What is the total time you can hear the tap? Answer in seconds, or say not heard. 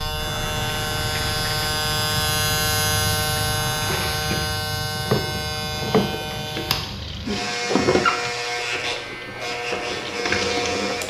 11 s.